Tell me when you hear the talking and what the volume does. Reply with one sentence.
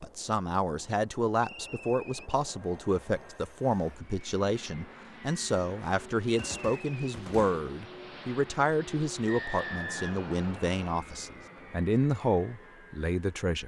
The talking can be heard from 0.0 to 13.6 s, at a steady volume.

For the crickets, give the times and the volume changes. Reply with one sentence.
You can't hear the crickets here.